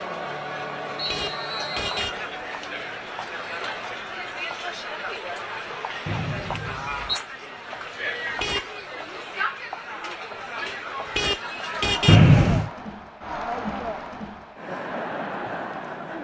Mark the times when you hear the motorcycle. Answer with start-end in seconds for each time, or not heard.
not heard.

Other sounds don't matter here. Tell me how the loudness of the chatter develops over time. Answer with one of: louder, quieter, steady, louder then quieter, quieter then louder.
steady.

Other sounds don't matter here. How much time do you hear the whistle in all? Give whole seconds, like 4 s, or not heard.
3 s.